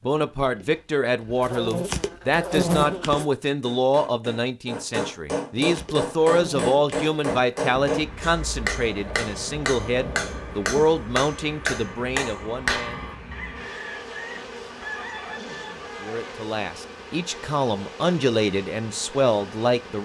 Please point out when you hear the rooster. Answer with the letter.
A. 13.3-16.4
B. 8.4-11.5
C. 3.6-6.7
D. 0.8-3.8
A.